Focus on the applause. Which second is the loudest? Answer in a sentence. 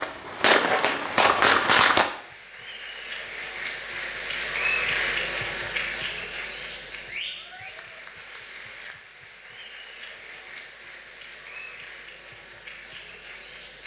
The volume of the applause peaks at 5 seconds.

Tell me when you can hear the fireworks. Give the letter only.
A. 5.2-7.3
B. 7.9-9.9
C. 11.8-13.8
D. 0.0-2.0
D.